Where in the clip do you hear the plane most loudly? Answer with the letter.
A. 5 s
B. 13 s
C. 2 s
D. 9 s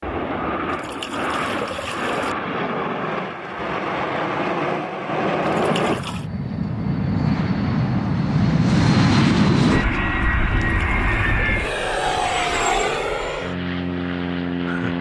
D.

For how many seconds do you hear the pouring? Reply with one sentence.
The pouring can be heard for 4 seconds in total.